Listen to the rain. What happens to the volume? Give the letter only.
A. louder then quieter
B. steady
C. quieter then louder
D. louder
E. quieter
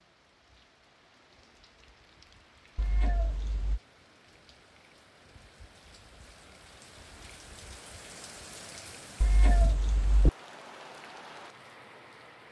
D.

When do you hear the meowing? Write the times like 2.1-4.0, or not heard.
2.8-3.8, 9.2-10.3.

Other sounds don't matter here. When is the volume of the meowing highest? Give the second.
10 s.